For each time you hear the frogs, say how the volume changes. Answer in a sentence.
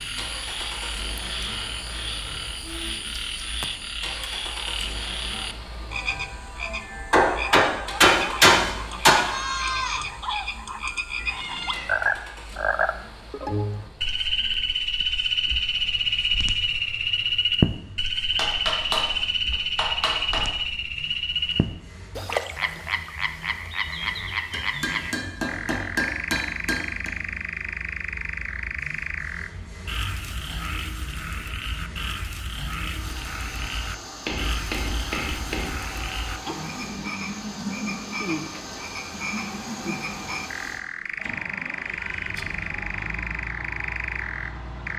You can hear the frogs from 0.0 to 44.9 s, getting louder then quieter.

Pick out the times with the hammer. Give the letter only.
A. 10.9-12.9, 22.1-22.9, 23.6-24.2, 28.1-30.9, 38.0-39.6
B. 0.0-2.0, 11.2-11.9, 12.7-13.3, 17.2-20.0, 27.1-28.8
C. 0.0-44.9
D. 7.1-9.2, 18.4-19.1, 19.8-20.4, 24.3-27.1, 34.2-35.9
D.